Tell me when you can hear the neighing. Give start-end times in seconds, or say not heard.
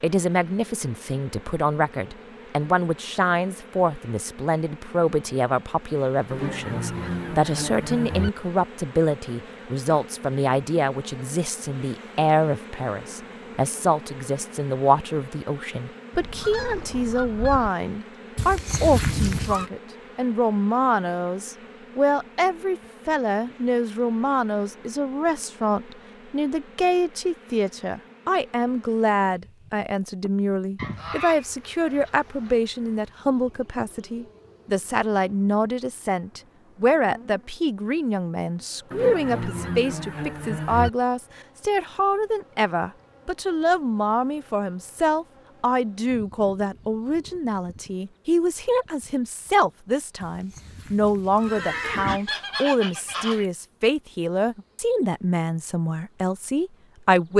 18.4-19.7, 50.2-52.2.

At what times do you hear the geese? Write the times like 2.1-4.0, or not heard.
6.3-8.3, 16.1-17.7, 30.8-32.5, 38.9-40.9, 51.5-53.5.